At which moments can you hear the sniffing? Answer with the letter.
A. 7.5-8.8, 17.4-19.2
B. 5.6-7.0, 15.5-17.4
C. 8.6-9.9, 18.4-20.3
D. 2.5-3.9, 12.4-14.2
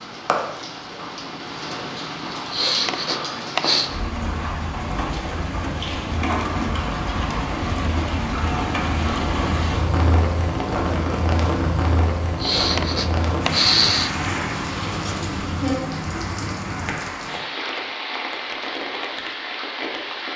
D.